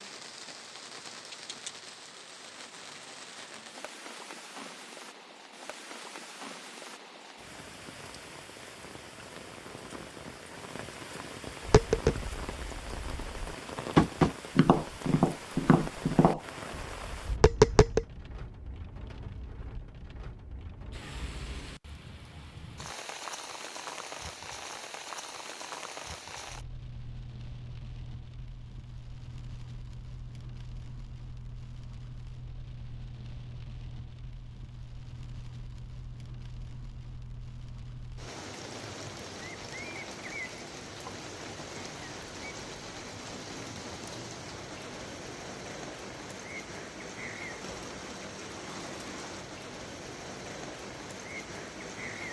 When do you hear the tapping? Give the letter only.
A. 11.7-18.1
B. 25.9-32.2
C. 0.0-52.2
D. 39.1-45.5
A.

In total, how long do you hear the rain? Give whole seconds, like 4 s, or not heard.
52 s.